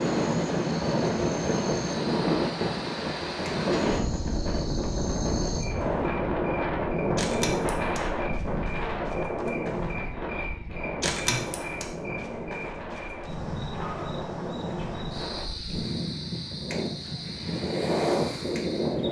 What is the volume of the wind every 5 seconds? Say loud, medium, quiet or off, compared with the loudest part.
loud, loud, medium, loud.